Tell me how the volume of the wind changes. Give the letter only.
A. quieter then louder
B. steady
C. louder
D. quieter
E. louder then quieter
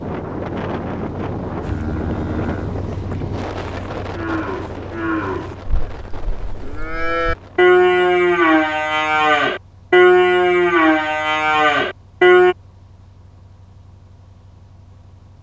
D.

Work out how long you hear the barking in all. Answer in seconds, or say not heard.
not heard.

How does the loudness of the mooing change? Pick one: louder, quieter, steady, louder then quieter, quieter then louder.
louder.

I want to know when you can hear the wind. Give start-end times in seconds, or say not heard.
0.0-8.1.